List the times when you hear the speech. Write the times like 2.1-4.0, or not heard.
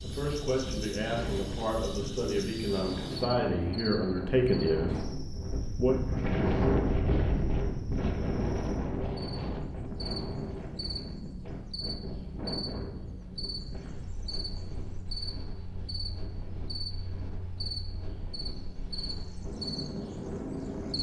0.0-6.0.